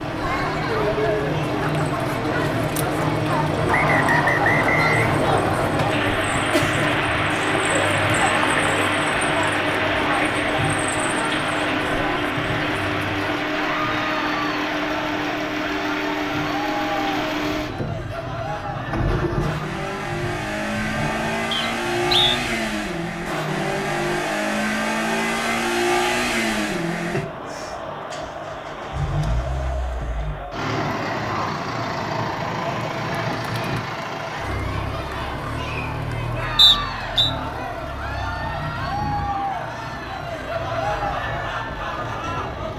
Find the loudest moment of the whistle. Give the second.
37 s.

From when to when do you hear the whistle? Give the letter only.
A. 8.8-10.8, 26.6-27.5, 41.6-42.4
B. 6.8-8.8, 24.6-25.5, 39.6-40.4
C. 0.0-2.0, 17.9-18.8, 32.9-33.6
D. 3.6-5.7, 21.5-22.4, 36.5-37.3
D.